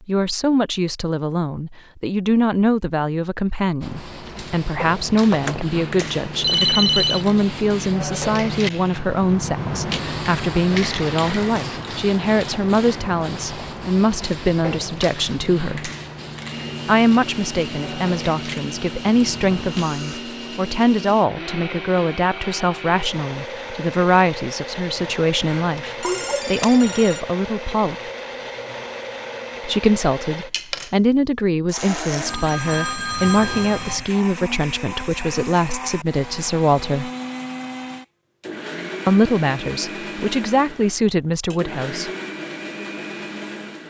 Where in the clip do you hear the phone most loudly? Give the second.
7 s.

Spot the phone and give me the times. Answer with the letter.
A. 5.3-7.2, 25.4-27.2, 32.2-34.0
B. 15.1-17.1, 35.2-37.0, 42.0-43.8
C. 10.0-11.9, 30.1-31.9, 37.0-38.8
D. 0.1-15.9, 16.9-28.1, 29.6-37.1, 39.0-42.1
A.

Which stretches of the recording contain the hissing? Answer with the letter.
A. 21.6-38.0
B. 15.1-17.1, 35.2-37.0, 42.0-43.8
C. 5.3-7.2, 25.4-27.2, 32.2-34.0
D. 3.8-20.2
D.